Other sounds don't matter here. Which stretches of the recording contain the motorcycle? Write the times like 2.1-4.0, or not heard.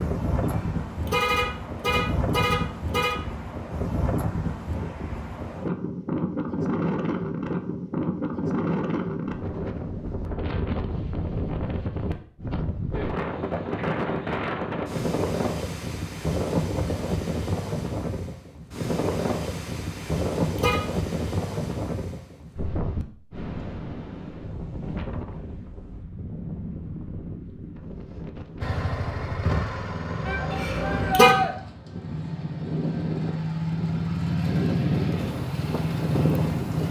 28.6-36.8.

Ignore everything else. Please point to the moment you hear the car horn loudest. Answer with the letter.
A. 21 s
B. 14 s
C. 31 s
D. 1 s
C.